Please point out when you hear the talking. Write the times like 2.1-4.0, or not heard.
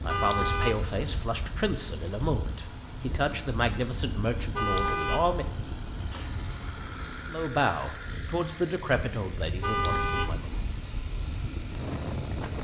0.0-5.5, 7.3-10.5.